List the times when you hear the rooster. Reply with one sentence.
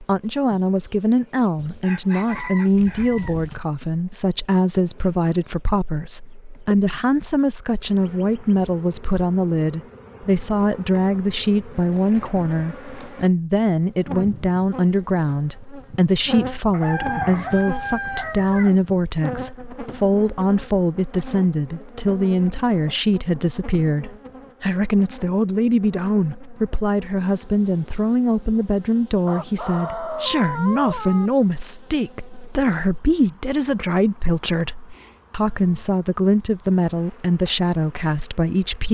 You can hear the rooster from 1.6 to 3.6 s, from 16.7 to 18.8 s and from 29.2 to 31.3 s.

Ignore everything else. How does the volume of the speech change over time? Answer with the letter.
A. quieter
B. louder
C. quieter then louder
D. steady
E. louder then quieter
D.